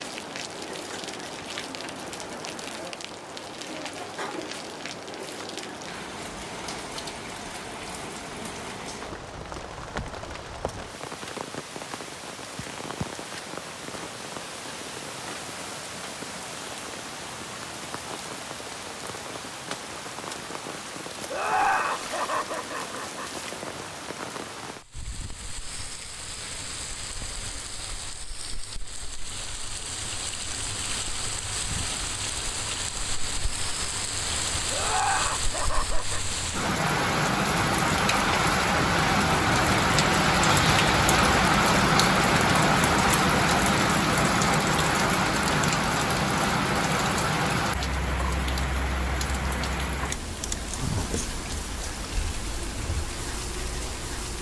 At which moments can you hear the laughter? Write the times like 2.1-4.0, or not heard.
21.3-23.3, 34.7-36.2.